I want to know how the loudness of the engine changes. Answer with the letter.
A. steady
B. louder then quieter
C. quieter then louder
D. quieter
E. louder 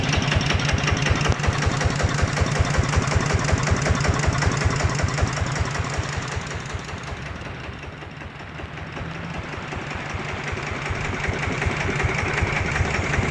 C.